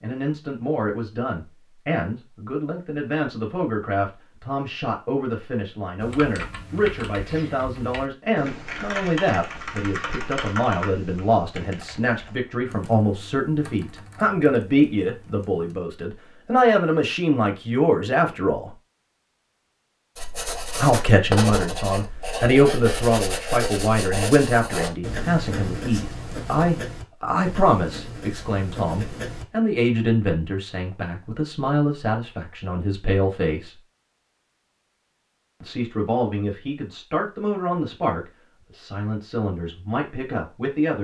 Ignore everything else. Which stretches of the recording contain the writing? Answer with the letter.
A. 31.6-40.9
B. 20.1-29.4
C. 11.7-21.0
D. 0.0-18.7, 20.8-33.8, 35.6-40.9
B.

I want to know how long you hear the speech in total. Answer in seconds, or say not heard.
37 s.